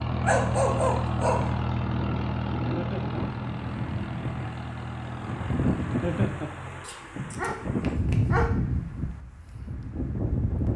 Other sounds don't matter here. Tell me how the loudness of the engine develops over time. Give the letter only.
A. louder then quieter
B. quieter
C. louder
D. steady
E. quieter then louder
B.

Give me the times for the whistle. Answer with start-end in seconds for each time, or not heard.
not heard.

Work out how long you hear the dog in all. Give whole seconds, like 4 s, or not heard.
3 s.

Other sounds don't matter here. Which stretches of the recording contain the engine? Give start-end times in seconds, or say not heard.
0.0-6.9.